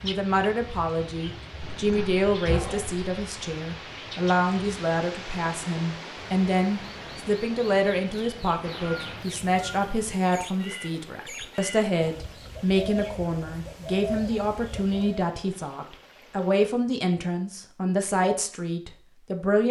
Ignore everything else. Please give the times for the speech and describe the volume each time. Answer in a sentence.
The speech can be heard from 0.0 to 19.6 s, at a steady volume.